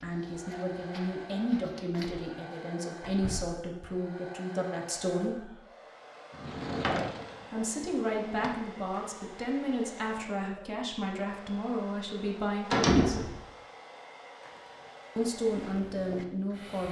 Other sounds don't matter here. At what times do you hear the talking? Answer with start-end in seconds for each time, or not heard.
0.0-5.5, 7.5-13.3, 15.2-16.8.